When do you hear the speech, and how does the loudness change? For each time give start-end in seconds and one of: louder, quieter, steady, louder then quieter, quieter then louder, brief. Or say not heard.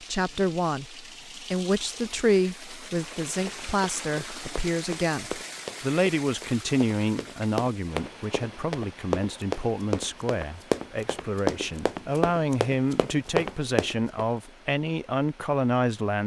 0.1-16.2 steady.